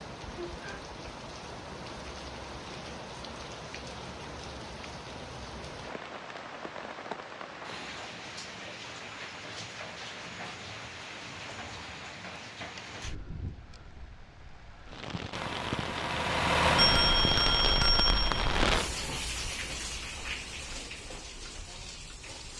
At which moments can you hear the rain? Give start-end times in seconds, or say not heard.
0.0-22.5.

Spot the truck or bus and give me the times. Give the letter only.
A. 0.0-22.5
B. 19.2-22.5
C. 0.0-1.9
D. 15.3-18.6
D.